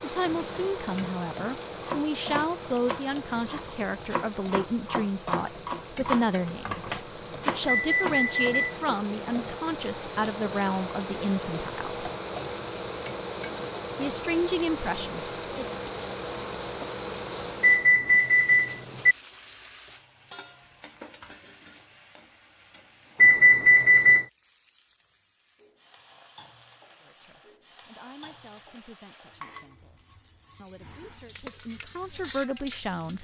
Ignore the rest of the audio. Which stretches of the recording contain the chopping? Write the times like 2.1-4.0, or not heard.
1.8-9.1.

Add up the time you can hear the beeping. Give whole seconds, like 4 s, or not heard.
4 s.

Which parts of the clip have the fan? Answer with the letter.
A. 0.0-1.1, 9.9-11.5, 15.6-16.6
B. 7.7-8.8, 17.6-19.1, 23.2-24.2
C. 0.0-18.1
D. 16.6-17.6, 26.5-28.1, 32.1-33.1
C.